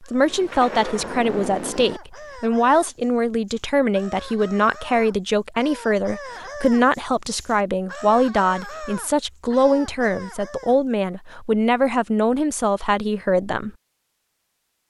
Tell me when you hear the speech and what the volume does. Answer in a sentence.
The speech can be heard from 0.0 to 13.7 s, at a steady volume.